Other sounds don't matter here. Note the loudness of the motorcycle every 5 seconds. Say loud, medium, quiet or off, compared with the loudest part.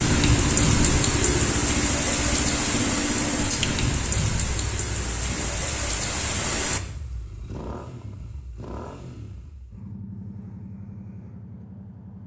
loud, medium, quiet.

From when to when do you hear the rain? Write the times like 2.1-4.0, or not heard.
0.0-6.8.